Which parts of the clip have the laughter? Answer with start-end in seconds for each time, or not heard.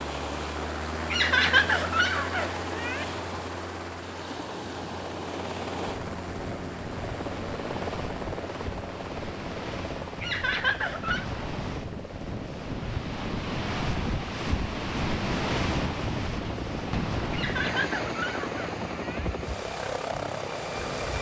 1.1-3.0, 10.2-11.2, 17.3-19.3.